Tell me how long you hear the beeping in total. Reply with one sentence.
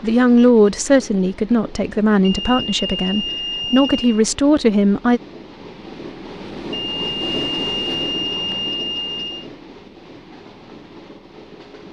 You can hear the beeping for 5 seconds altogether.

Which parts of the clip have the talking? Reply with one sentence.
The talking can be heard from 0.0 to 5.2 s.